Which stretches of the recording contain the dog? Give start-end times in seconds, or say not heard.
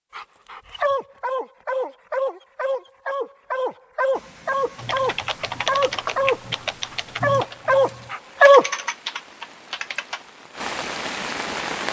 0.1-8.7.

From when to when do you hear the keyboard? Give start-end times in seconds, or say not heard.
4.8-10.2.